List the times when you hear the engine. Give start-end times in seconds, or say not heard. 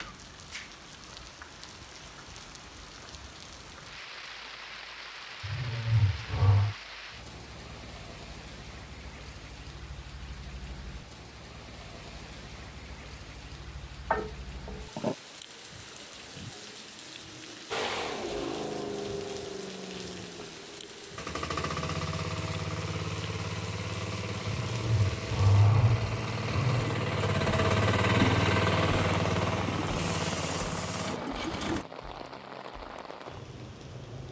17.7-31.9.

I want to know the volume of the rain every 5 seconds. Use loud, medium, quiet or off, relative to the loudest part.
medium, medium, medium, medium, medium, loud, loud.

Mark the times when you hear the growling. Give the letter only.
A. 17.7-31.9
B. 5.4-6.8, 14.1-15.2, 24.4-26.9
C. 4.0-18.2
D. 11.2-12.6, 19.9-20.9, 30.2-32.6
B.